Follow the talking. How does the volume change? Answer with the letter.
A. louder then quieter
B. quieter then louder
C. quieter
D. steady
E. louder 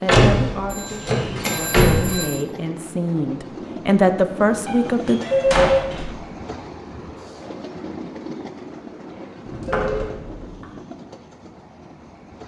E.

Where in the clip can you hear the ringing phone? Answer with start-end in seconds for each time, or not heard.
0.7-2.5, 5.2-5.8, 9.1-10.1.